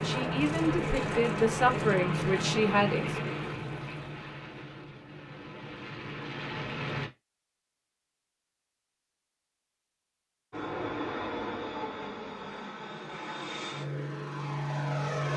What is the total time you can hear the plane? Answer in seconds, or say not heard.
12 s.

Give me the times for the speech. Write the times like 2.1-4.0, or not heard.
0.0-3.4.